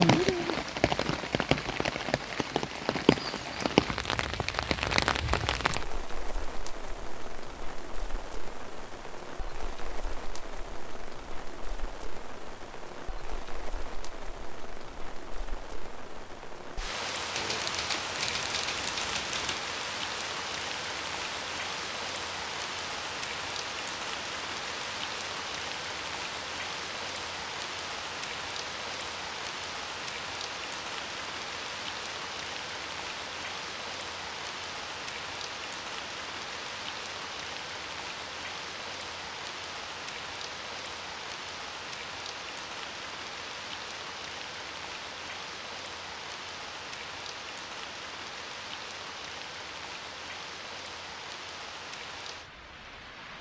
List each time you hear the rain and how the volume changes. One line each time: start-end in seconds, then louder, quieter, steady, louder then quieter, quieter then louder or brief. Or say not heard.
0.0-53.3 quieter.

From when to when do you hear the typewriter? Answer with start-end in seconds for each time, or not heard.
17.4-19.6.